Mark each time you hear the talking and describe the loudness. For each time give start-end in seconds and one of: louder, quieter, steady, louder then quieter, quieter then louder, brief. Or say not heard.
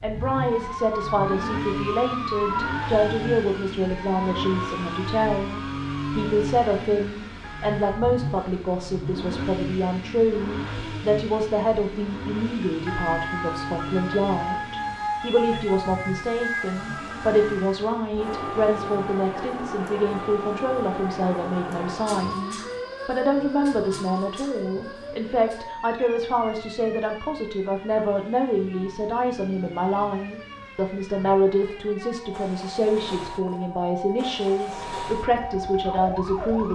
0.0-36.7 steady.